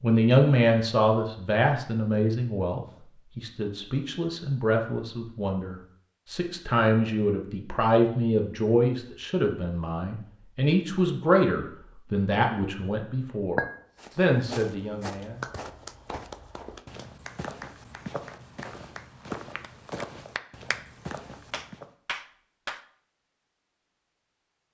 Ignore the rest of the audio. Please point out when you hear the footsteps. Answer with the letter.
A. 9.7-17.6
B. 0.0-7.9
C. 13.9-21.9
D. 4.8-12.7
C.